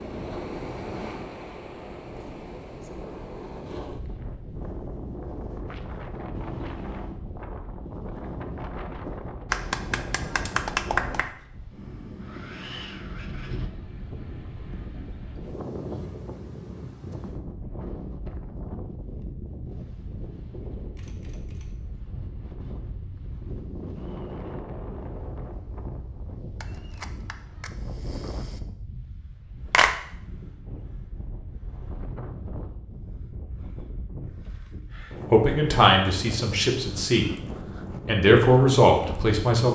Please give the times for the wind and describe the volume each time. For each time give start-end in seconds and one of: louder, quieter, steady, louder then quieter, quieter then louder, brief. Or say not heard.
0.0-39.6 steady.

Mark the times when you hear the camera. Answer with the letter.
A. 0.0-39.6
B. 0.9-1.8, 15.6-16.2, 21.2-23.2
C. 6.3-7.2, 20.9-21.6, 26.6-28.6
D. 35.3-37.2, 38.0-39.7
C.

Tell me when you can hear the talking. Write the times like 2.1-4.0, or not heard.
35.3-37.2, 38.0-39.7.